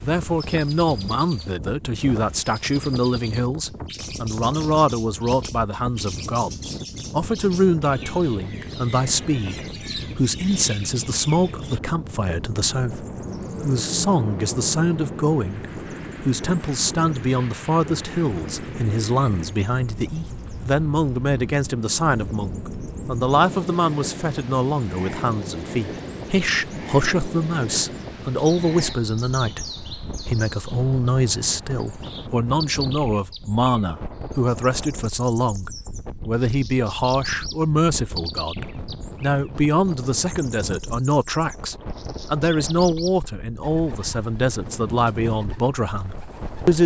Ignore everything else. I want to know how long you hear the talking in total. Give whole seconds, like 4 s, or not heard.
47 s.